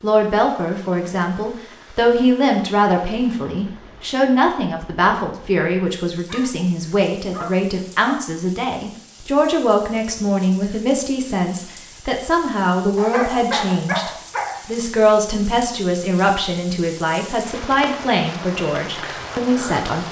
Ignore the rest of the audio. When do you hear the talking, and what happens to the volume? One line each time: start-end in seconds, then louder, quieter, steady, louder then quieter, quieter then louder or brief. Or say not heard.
0.0-20.0 steady.